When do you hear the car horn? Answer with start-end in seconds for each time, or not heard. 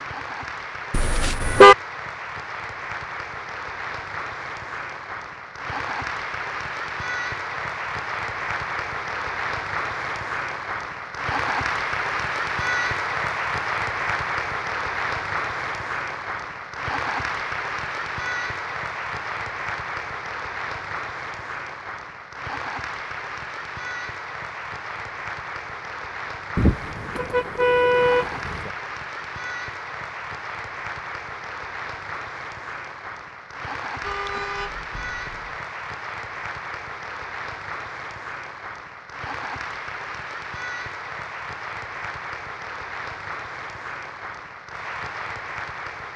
0.9-1.8, 26.6-28.7, 34.0-35.5.